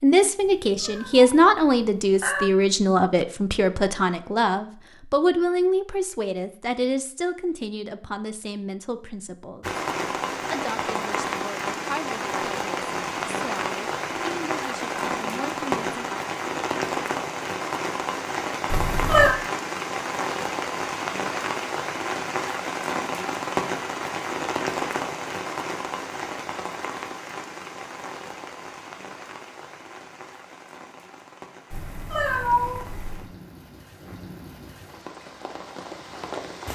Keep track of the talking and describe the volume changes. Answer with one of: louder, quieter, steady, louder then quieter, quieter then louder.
quieter.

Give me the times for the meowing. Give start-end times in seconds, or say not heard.
0.4-2.5, 18.7-19.4, 31.7-33.3.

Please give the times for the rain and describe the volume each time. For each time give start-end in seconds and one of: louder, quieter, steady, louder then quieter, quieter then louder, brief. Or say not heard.
9.6-36.7 quieter.